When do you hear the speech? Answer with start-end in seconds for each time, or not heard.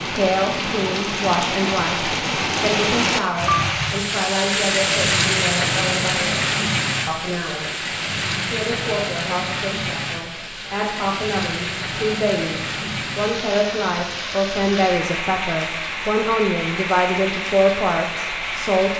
0.0-7.8, 8.4-18.9.